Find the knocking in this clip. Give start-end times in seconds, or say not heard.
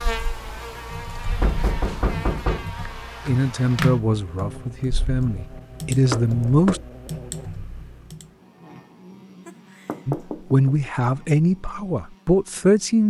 1.4-2.7, 6.1-6.8, 9.4-10.9.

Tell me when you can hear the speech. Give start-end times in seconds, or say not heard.
3.2-6.8, 10.1-13.0.